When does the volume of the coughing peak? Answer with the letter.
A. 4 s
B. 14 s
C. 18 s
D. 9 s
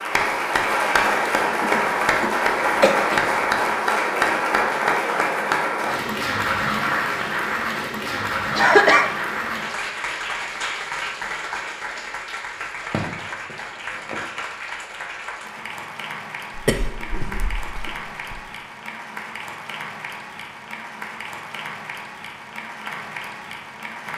D.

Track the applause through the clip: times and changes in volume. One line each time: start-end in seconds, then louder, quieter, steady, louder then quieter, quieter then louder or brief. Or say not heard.
0.0-24.1 quieter.